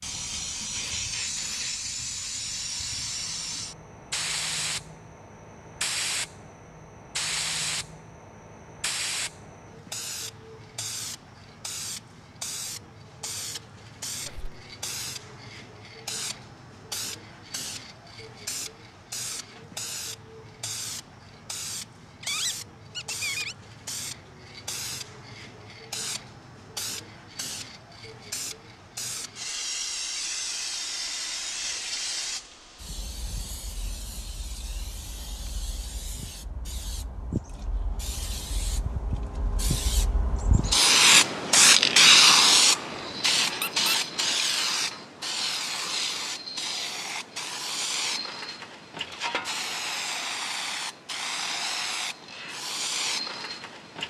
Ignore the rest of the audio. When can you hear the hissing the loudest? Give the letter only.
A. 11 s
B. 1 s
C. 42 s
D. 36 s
C.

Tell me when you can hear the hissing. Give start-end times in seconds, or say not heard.
0.0-54.0.